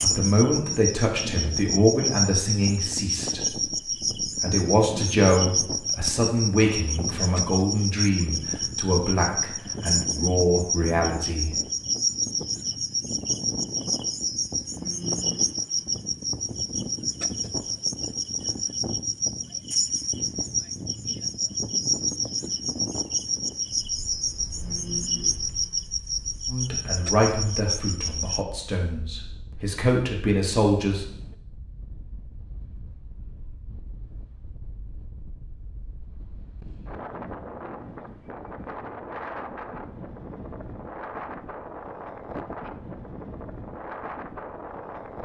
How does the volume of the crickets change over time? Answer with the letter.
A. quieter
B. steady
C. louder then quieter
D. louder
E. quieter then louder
B.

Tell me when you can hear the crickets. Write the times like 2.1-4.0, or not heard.
0.0-28.4.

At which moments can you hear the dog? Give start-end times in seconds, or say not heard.
not heard.